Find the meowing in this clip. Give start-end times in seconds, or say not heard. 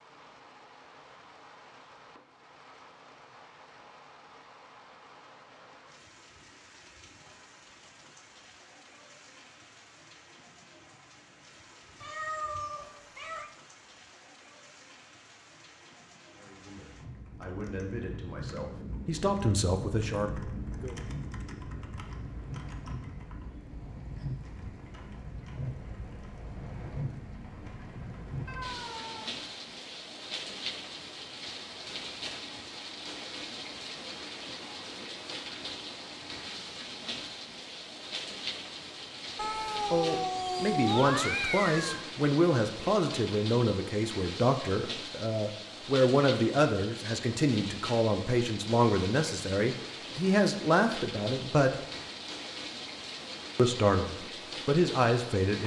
12.0-13.5, 28.4-29.4, 39.4-42.0.